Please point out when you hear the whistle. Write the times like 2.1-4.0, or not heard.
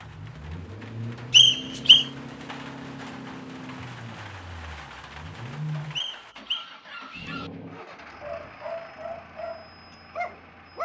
1.3-2.0, 6.0-7.3.